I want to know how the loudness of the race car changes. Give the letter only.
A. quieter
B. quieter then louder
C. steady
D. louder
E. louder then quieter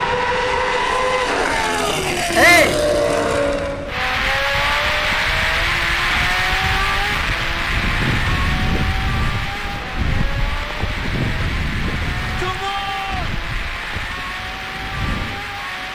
A.